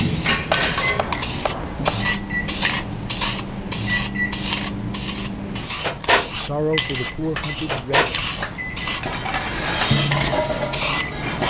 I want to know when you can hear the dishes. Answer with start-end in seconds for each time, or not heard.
0.1-1.3, 8.4-11.4.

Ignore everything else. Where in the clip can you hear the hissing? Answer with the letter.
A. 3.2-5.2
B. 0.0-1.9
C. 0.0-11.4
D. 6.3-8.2
C.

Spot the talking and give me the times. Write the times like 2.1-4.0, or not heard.
6.3-8.2.